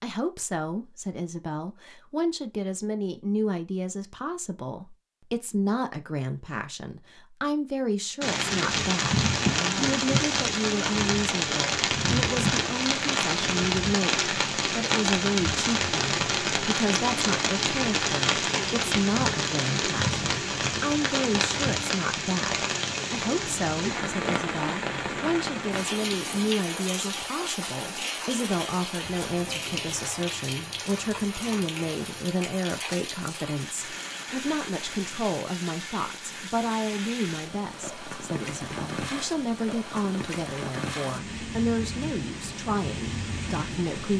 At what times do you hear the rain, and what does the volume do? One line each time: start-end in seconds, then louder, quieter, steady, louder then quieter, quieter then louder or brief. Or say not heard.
8.2-44.1 quieter.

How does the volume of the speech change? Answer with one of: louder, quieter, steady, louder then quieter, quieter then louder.
steady.